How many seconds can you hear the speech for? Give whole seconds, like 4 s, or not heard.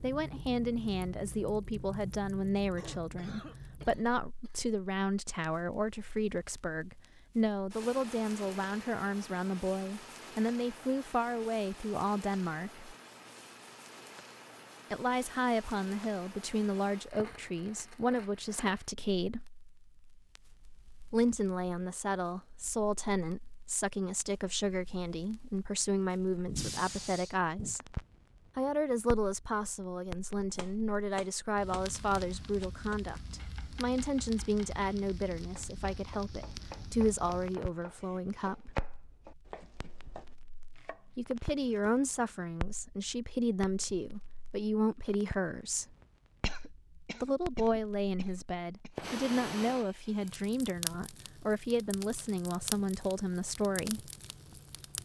46 s.